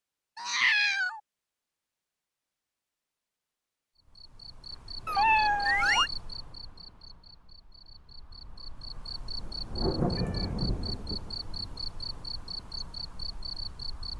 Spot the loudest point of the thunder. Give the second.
10 s.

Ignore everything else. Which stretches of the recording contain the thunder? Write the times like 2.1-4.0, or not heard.
9.2-12.2.